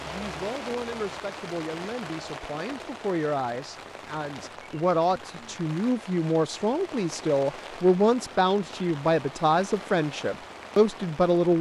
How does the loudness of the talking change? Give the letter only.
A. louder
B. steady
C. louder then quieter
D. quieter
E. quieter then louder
A.